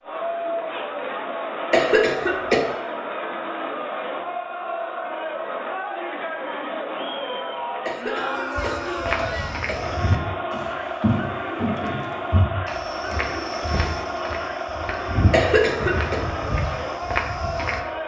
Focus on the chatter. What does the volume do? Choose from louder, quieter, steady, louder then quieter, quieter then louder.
steady.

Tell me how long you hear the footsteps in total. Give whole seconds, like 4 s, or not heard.
9 s.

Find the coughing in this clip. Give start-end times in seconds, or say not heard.
1.7-2.6, 7.8-9.9, 15.3-16.1.